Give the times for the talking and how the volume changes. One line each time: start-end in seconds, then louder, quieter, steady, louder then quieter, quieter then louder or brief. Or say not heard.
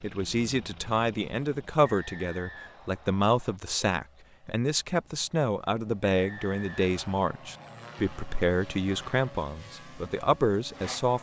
0.0-11.1 steady.